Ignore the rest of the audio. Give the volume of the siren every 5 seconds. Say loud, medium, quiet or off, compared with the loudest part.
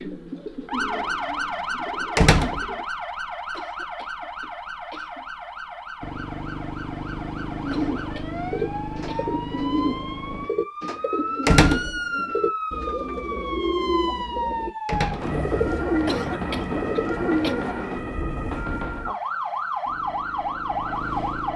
loud, medium, loud, loud, loud.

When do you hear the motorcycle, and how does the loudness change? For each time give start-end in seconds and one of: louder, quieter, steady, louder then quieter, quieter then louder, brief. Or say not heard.
6.0-10.5 steady
19.9-21.5 brief.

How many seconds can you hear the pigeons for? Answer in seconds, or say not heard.
13 s.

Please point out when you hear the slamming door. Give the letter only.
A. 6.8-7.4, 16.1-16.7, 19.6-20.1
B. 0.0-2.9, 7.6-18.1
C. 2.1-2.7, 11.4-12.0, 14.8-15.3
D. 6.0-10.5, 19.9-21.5
C.